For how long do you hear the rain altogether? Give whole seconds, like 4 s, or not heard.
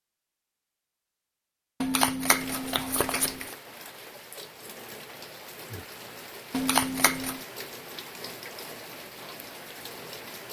8 s.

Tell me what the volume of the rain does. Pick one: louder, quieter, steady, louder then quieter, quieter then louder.
steady.